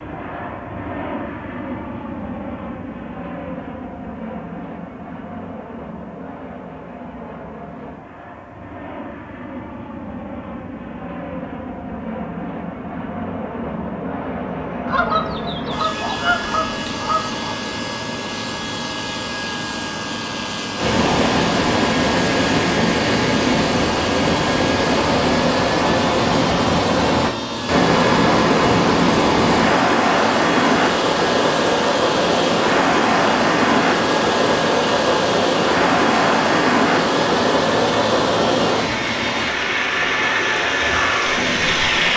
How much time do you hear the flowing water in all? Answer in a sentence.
You can hear the flowing water for 21 seconds altogether.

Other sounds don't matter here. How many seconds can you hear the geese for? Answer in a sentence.
You can hear the geese for 3 seconds altogether.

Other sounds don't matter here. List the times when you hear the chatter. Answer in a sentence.
The chatter can't be heard in this clip.